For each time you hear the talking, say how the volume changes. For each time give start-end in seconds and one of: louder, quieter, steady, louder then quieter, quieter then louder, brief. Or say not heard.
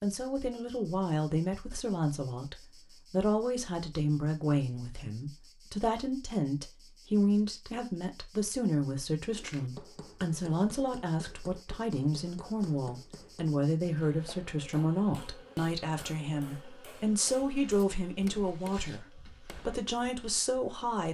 0.0-21.0 steady.